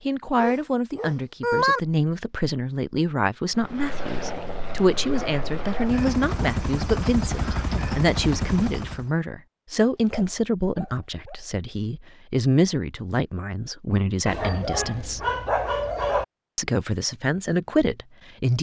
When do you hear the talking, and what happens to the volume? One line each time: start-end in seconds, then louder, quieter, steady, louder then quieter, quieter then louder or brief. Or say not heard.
0.1-15.2 steady
16.6-18.5 brief.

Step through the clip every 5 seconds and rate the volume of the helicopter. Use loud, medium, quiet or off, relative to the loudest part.
medium, loud, off, off.